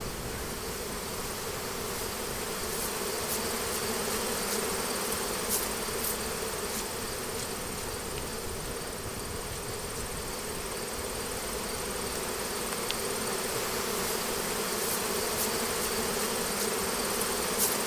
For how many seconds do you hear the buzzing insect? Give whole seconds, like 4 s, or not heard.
18 s.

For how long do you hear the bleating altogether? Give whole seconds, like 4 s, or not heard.
not heard.